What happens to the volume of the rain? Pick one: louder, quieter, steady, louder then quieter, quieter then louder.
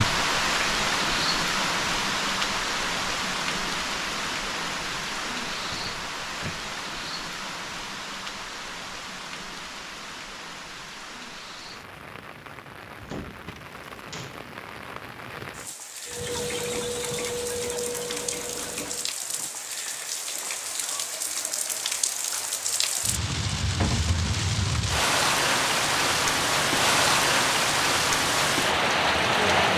quieter then louder.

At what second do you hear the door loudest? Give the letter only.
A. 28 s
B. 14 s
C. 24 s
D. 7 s
C.